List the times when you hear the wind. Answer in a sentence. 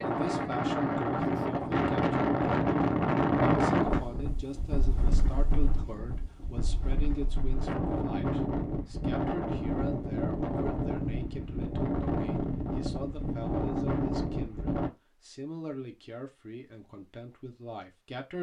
The wind can be heard from 0.0 to 14.9 s.